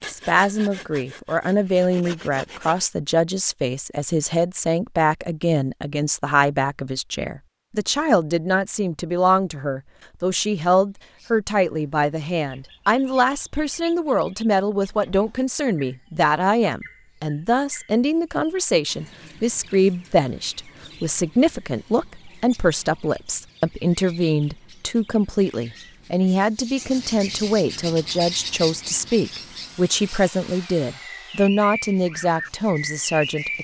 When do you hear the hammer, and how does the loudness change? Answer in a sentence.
You can't hear the hammer here.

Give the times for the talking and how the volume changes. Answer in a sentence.
The talking can be heard from 0.0 to 33.6 s, at a steady volume.